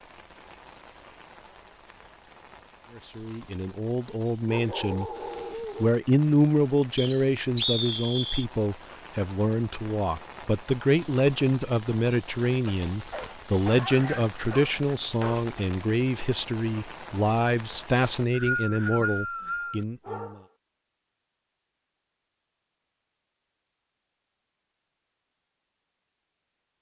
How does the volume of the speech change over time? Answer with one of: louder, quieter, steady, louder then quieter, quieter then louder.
steady.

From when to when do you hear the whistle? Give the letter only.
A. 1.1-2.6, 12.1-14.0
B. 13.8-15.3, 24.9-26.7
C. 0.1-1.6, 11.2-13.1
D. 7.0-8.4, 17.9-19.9
D.